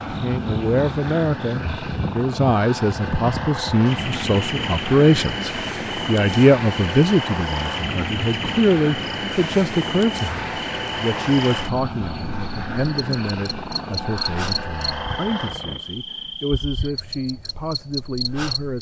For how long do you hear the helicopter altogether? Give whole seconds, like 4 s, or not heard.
16 s.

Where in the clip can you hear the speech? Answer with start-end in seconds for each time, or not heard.
0.1-18.7.